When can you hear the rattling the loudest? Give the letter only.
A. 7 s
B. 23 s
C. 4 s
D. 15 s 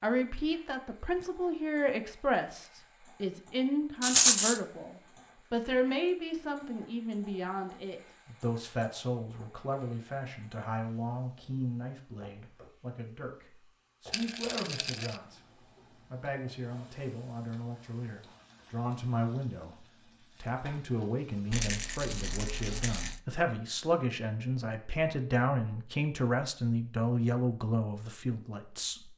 C.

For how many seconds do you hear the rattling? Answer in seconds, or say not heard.
3 s.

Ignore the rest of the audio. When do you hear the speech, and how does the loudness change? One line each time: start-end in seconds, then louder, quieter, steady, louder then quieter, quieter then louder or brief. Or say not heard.
0.0-29.1 quieter then louder.